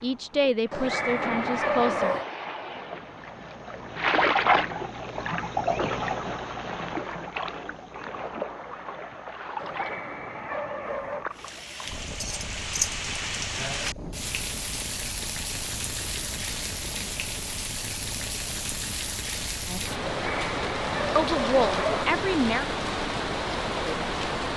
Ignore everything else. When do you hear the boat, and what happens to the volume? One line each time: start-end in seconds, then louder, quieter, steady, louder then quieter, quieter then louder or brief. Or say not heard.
0.0-24.4 quieter.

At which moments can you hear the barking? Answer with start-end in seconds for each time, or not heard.
0.7-2.2, 9.6-11.2, 20.1-22.1.